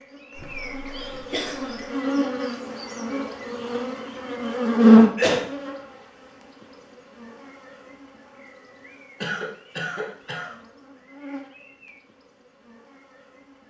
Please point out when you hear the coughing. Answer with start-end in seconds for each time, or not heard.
0.3-1.9, 4.8-5.5, 9.2-10.5.